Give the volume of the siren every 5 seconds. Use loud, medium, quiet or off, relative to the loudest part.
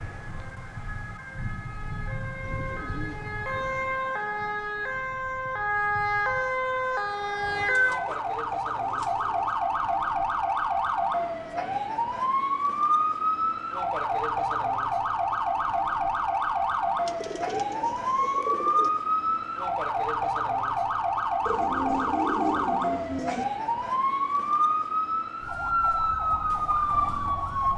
medium, loud, loud, loud, loud, loud.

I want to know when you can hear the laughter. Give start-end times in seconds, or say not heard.
not heard.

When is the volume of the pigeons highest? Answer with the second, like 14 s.
22 s.